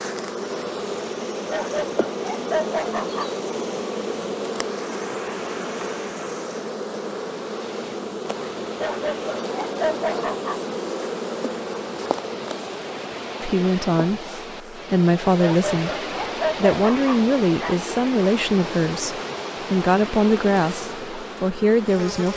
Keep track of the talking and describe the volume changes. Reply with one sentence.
The volume of the talking stays about the same.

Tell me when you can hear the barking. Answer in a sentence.
You can hear the barking from 1.4 to 3.3 s, from 8.8 to 11.1 s and from 15.3 to 17.8 s.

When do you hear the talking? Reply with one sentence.
The talking can be heard from 13.4 to 22.3 s.